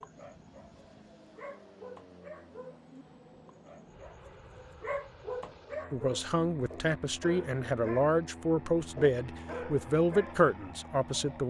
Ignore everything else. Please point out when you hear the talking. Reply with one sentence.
The talking can be heard from 5.9 to 11.4 s.